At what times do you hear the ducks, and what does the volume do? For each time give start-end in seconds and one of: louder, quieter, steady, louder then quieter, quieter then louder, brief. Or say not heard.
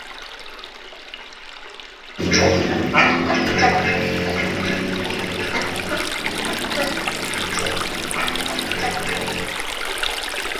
2.1-9.4 quieter.